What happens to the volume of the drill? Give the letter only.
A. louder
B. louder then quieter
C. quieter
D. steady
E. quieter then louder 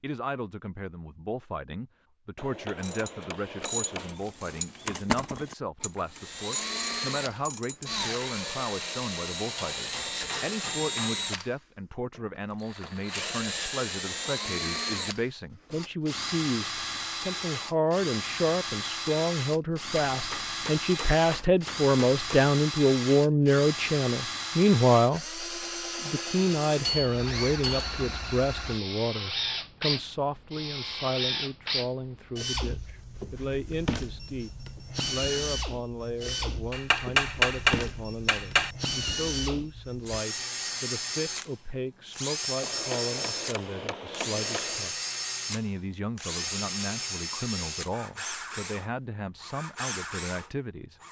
D.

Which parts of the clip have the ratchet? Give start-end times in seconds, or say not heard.
2.8-8.1.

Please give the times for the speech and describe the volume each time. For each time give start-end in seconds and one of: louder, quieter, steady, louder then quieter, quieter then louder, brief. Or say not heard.
0.0-51.0 louder then quieter.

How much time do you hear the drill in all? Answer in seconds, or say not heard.
45 s.